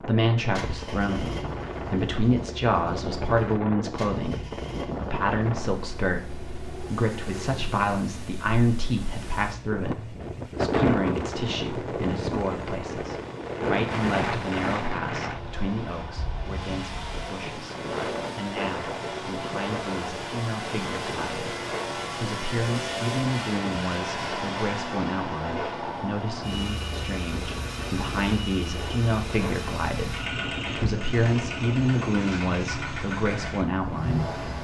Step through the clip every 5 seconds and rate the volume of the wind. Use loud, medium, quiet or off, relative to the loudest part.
medium, medium, loud, medium, medium, medium, medium.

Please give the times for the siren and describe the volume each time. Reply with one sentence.
You can't hear the siren here.